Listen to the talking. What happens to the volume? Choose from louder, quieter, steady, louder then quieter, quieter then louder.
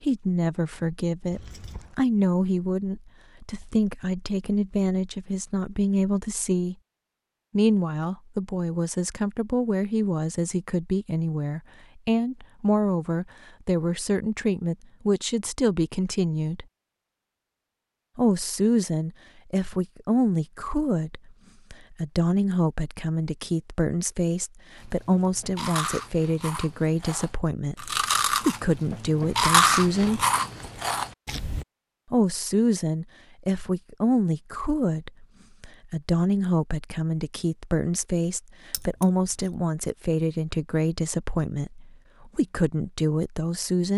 steady.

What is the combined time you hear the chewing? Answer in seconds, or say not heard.
7 s.